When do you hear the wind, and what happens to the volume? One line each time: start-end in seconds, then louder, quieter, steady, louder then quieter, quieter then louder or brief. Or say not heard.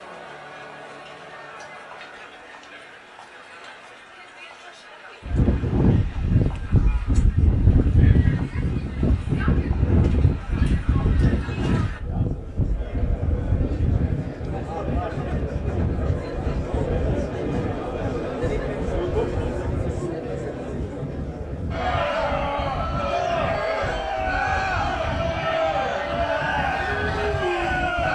5.2-28.0 quieter.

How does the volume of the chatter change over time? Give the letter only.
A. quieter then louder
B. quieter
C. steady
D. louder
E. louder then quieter
D.